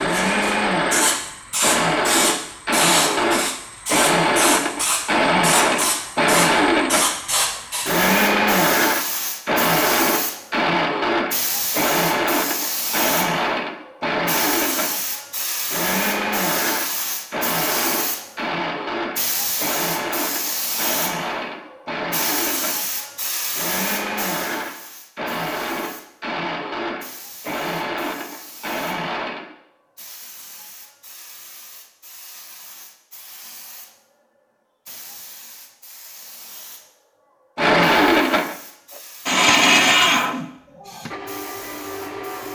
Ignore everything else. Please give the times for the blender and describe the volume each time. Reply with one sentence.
The blender can be heard from 0.0 to 29.6 s, getting quieter; and from 37.5 to 42.4 s, getting quieter.